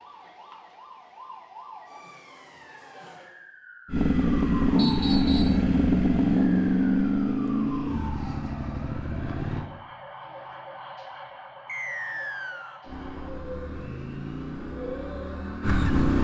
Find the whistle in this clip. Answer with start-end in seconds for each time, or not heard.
4.8-5.6, 11.7-12.8.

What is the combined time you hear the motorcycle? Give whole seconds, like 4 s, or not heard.
9 s.